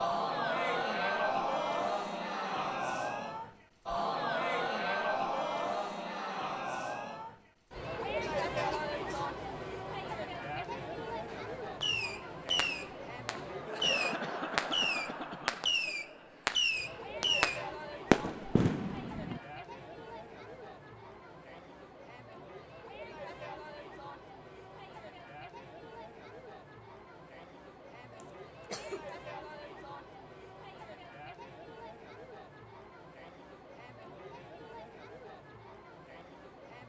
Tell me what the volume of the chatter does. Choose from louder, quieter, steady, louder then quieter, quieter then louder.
quieter.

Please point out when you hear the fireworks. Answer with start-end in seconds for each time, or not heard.
11.3-19.4.